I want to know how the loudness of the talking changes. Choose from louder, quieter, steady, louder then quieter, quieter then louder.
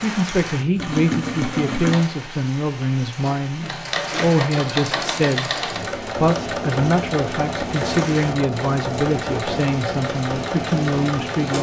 steady.